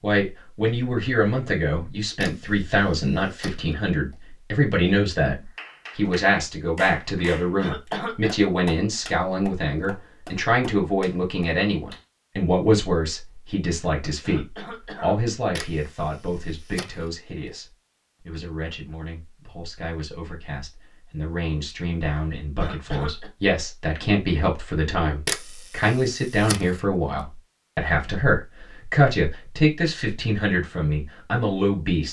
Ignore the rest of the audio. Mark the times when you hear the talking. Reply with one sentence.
The talking can be heard from 0.0 to 32.0 s.